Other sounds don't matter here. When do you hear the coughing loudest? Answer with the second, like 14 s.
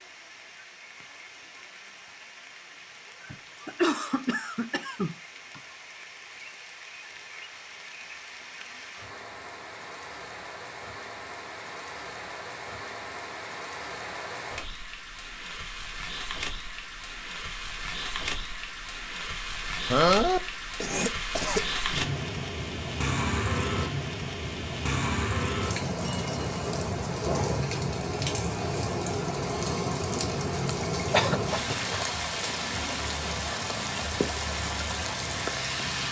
20 s.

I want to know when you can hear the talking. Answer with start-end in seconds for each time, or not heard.
not heard.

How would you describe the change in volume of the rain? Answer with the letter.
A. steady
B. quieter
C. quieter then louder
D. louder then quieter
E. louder
E.